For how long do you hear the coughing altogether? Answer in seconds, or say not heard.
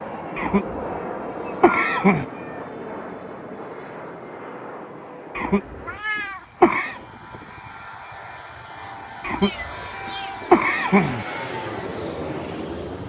5 s.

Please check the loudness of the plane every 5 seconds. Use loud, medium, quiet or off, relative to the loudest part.
loud, medium, loud.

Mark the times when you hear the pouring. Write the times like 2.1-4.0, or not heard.
not heard.